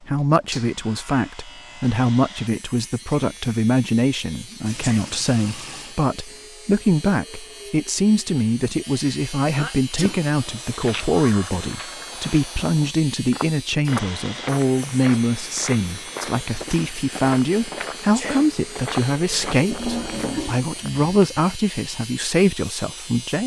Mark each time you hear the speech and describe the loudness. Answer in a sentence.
You can hear the speech from 0.1 to 23.4 s, at a steady volume.